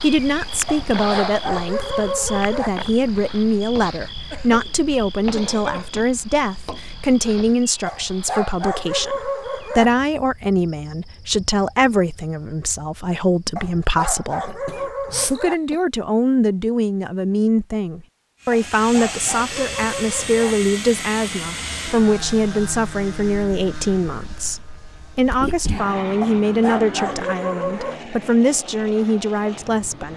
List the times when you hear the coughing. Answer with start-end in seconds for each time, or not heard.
4.3-6.0, 14.4-15.8, 25.3-25.9.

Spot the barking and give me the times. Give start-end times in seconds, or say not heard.
0.7-2.7, 7.8-9.8, 13.6-15.6, 18.5-20.6, 26.2-28.0.